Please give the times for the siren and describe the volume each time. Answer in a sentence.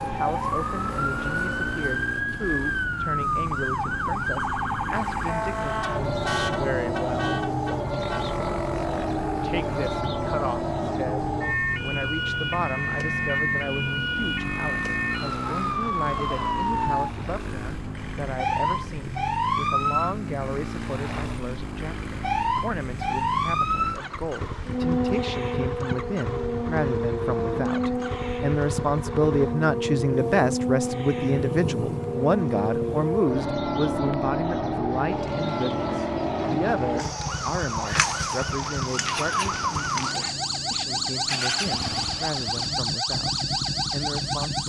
The siren can be heard from 0.0 to 44.6 s, at a steady volume.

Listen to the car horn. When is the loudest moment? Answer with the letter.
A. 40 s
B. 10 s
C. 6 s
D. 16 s
C.